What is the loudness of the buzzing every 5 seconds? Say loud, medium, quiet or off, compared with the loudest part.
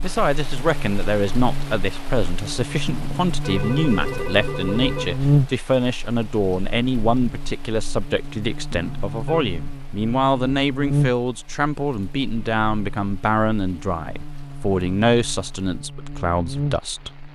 medium, loud, loud, medium.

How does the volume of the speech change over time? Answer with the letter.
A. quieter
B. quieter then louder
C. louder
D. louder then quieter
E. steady
E.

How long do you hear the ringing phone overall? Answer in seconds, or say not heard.
3 s.